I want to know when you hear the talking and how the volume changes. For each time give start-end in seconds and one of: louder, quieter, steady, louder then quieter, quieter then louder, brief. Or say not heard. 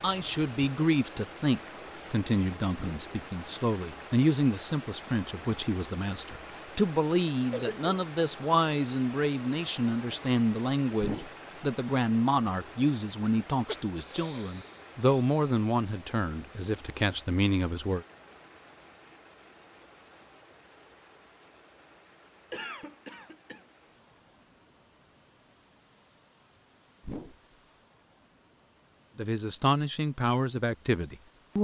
0.0-18.1 steady
29.1-31.5 brief.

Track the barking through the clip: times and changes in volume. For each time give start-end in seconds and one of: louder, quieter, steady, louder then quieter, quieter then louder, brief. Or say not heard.
not heard.